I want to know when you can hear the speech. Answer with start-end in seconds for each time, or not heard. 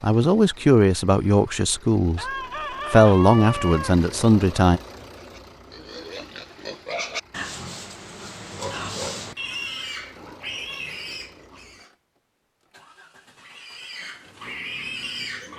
0.0-2.3, 2.9-4.8.